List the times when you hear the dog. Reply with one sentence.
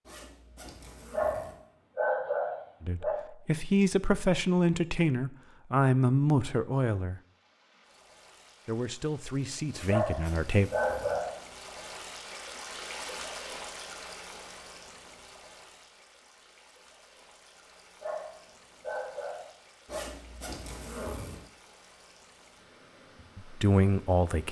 The dog can be heard from 1.1 to 3.1 s, from 9.8 to 11.3 s and from 18.0 to 20.0 s.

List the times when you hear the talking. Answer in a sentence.
You can hear the talking from 2.8 to 7.2 s, from 8.7 to 10.7 s and from 23.4 to 24.4 s.